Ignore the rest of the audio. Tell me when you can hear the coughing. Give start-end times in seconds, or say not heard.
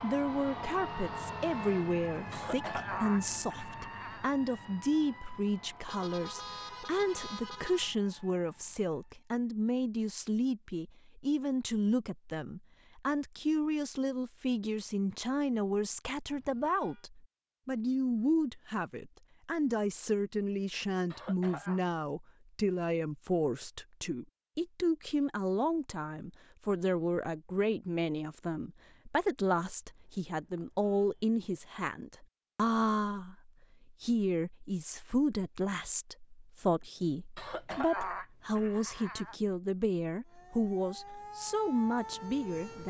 2.3-4.3, 21.1-21.8, 37.4-39.4.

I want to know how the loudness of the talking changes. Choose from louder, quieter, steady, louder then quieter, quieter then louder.
steady.